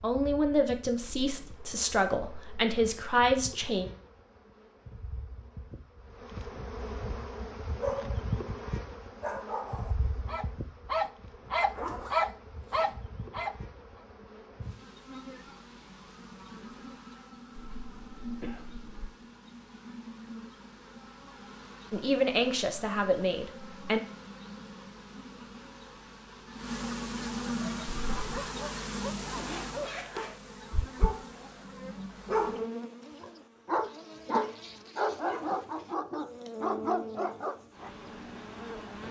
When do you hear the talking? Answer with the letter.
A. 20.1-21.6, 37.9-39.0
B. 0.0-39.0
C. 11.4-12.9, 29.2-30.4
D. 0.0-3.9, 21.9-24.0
D.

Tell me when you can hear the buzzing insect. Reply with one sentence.
You can hear the buzzing insect from 0.0 to 39.0 s.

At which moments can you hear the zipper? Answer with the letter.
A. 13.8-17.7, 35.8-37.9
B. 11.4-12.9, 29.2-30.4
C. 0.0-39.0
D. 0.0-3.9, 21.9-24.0
B.